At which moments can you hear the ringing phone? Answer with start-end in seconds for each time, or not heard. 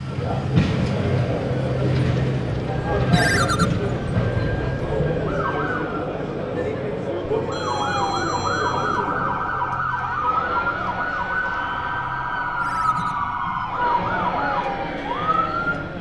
3.1-3.6, 7.5-9.0, 12.6-13.2.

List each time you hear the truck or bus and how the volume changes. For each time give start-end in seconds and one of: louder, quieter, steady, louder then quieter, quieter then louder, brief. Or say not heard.
0.0-15.9 quieter.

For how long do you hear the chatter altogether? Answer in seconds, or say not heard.
16 s.